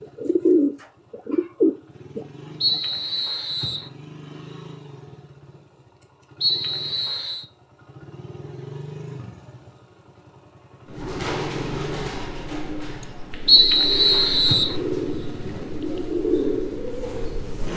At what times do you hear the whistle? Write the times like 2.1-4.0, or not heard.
2.6-3.9, 6.4-7.5, 13.4-14.8.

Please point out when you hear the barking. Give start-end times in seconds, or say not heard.
not heard.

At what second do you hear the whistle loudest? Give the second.
14 s.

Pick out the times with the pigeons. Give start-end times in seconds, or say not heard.
0.0-2.2, 10.8-17.7.